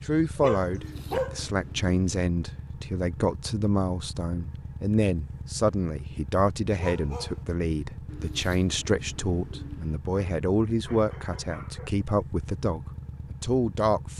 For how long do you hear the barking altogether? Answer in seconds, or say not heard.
4 s.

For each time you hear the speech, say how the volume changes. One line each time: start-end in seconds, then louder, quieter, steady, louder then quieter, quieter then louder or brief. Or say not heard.
0.1-14.1 steady.